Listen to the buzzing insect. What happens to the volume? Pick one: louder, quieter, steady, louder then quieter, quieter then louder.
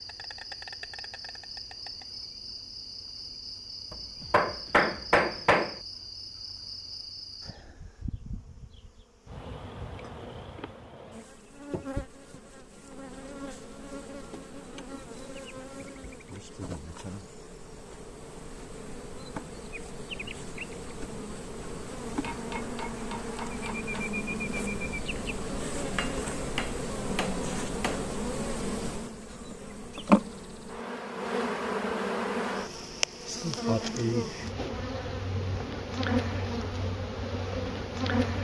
louder.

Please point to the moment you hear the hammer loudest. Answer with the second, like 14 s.
5 s.